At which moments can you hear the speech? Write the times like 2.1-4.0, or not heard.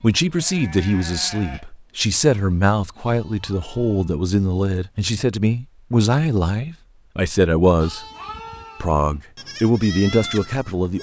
0.0-8.0, 8.8-10.9.